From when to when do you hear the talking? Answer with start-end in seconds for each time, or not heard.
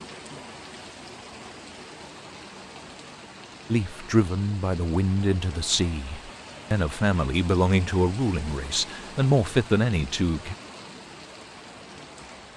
3.7-10.6.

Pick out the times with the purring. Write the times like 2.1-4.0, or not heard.
not heard.